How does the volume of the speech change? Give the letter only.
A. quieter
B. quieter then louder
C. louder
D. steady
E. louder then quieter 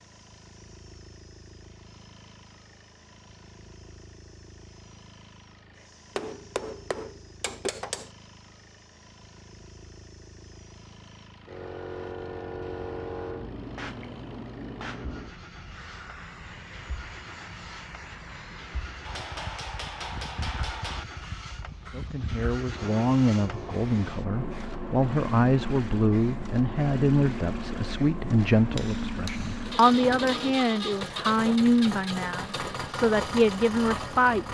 D.